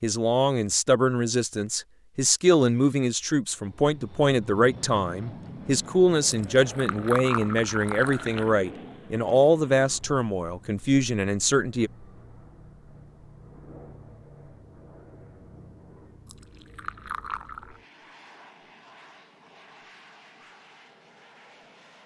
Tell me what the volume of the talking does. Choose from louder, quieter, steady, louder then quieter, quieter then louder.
steady.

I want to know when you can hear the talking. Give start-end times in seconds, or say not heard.
0.0-11.9.